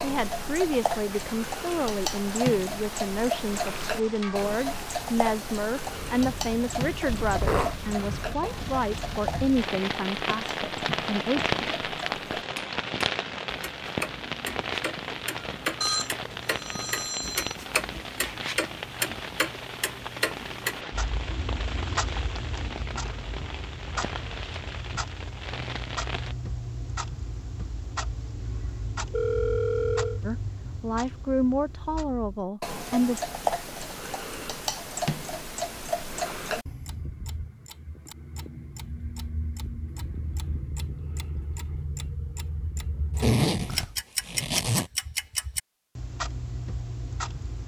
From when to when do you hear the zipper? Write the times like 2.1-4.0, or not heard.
7.0-7.8, 43.1-44.9.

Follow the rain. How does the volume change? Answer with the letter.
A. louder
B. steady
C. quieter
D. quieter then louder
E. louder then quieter
E.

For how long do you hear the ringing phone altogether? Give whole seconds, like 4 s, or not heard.
3 s.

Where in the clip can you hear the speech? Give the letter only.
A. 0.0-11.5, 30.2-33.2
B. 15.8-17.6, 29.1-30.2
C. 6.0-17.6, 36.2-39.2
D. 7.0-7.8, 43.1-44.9
A.